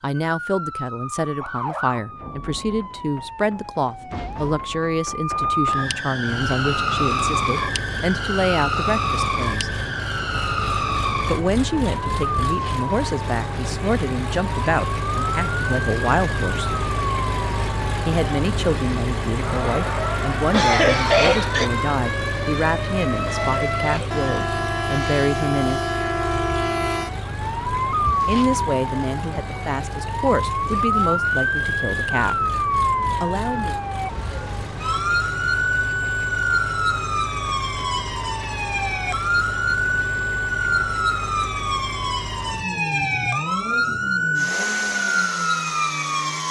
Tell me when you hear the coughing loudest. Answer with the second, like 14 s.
21 s.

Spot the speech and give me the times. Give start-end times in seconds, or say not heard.
0.0-9.7, 11.2-16.7, 18.1-25.8, 28.2-32.4, 33.2-33.8.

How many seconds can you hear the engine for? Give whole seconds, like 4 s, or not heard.
40 s.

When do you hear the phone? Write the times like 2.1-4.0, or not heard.
not heard.